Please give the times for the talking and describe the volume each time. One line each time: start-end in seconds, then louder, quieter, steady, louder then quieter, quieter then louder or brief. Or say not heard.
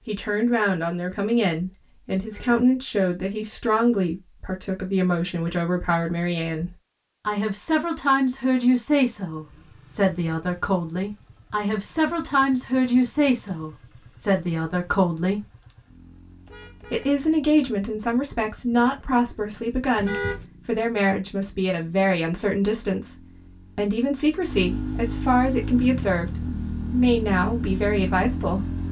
0.1-15.4 steady
16.9-28.6 steady.